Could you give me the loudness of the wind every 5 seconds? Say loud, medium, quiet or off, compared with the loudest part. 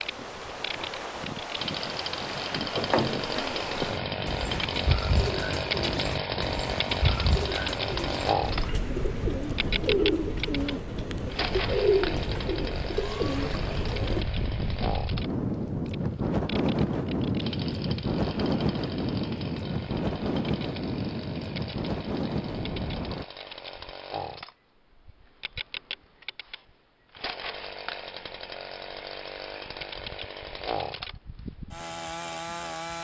medium, medium, medium, loud, loud, off, off.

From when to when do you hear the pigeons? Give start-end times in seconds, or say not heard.
2.8-14.2.